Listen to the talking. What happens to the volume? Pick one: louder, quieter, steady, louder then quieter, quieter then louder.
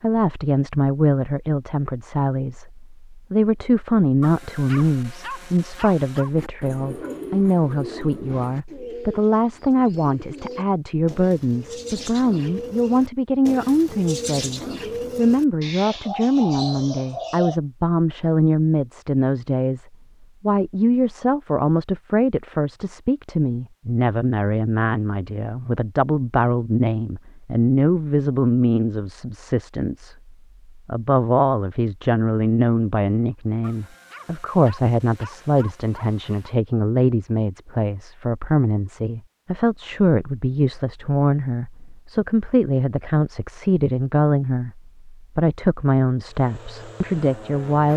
steady.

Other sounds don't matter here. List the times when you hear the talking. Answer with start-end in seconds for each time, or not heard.
0.0-47.9.